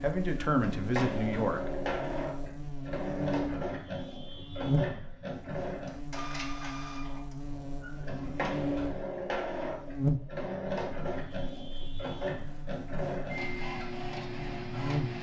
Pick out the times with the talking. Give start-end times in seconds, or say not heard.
0.0-1.9.